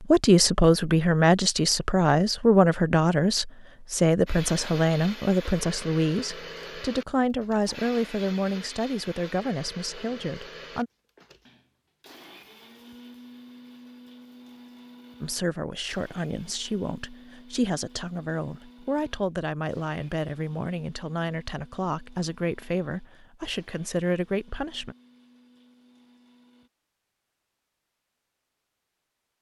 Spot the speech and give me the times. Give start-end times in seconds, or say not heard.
0.0-10.9, 15.2-24.9.